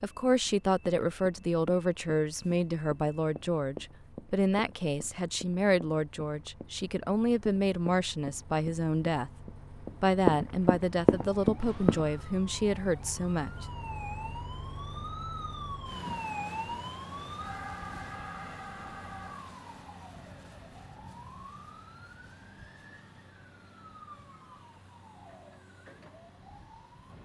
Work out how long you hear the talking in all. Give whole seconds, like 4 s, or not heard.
14 s.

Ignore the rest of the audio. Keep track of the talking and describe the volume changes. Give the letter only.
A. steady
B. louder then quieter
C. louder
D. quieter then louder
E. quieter
A.